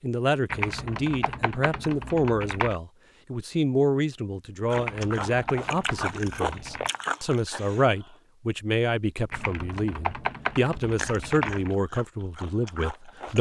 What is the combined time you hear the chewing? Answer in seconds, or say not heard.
6 s.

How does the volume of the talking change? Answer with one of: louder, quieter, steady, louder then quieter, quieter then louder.
steady.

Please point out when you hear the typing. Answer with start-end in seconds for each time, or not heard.
0.5-2.8, 4.7-6.9, 9.3-11.8.